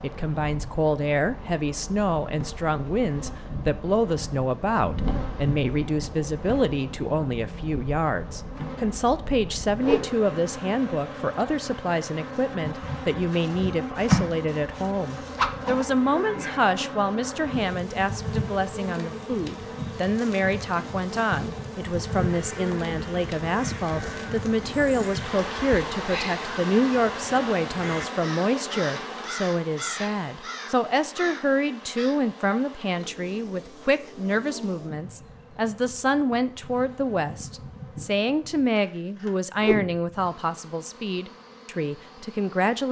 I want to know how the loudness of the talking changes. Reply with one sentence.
The loudness of the talking stays about the same.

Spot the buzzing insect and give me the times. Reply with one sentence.
You can hear the buzzing insect from 0.0 to 42.8 s.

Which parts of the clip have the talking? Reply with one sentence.
You can hear the talking from 0.0 to 42.8 s.